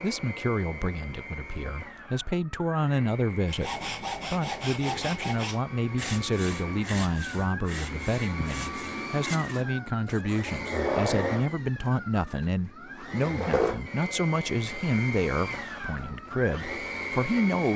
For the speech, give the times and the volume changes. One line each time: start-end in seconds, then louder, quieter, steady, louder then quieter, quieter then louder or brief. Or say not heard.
0.0-17.7 steady.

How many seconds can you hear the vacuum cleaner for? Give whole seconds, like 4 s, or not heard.
18 s.